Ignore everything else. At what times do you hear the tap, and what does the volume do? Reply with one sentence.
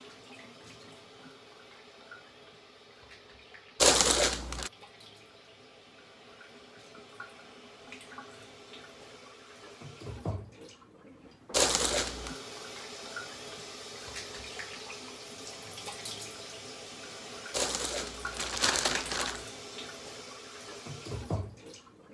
The tap can be heard from 0.0 to 22.1 s, getting louder.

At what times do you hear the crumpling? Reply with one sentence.
The crumpling can be heard from 3.8 to 4.7 s, from 11.5 to 12.3 s and from 17.5 to 19.4 s.